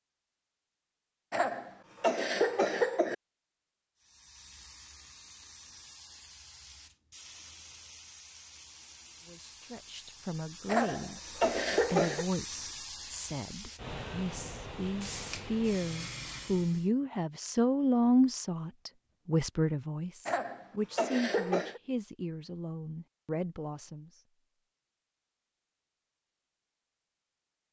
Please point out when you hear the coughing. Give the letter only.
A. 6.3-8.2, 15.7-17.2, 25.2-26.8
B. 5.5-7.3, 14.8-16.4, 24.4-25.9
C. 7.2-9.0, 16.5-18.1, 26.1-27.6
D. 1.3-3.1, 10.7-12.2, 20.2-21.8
D.